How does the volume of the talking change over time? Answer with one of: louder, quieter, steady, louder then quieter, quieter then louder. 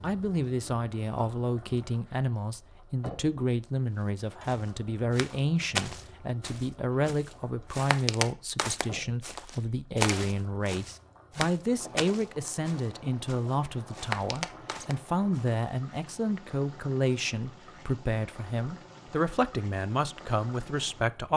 steady.